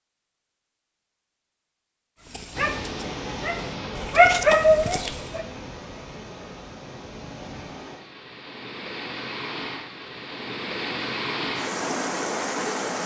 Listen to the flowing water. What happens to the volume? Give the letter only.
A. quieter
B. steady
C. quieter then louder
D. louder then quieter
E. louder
C.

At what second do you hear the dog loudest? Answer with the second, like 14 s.
4 s.